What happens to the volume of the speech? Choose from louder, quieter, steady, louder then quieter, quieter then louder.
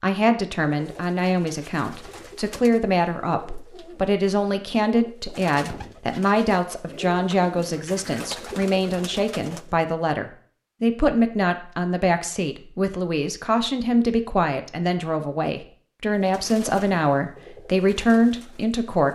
steady.